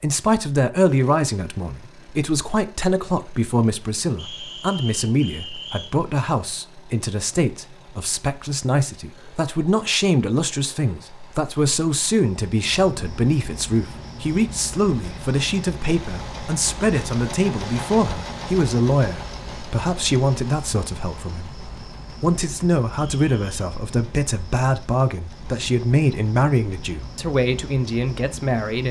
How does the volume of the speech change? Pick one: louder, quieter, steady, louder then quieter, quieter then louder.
steady.